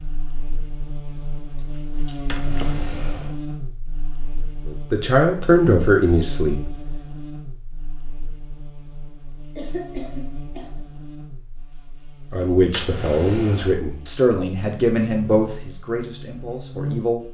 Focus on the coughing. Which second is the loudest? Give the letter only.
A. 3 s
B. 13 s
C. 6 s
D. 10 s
D.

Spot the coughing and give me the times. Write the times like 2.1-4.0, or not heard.
1.6-2.6, 9.6-10.8.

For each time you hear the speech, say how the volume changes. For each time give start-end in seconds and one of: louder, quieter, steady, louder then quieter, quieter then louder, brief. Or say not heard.
4.7-6.8 brief
12.3-17.2 quieter.